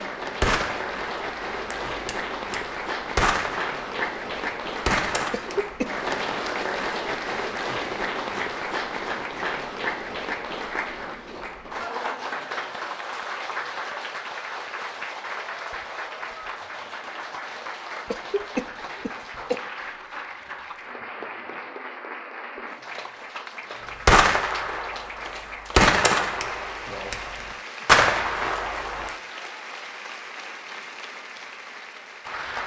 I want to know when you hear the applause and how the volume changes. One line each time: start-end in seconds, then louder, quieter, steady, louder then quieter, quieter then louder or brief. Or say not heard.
0.0-32.6 quieter.